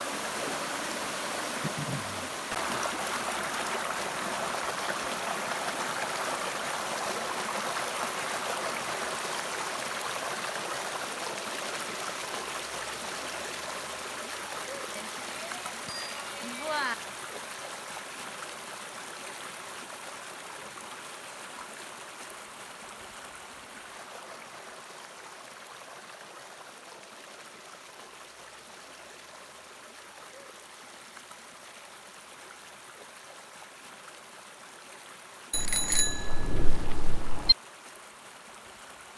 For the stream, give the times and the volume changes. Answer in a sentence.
The stream can be heard from 0.0 to 39.1 s, getting quieter.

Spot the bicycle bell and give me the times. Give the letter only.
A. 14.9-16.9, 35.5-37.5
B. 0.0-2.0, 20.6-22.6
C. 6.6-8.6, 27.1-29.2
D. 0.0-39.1
A.